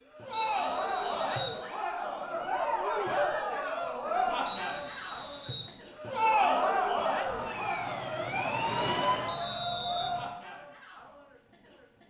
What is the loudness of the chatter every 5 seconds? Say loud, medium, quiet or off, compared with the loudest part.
loud, loud, quiet.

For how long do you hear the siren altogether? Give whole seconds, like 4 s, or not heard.
3 s.